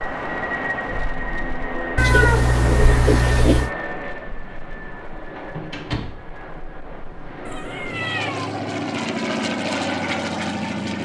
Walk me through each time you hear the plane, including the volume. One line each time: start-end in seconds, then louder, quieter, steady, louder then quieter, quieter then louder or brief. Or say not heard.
0.0-11.0 quieter then louder.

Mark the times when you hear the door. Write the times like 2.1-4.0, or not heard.
5.3-6.0.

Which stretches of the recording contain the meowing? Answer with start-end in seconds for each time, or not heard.
1.9-3.7, 7.5-8.6.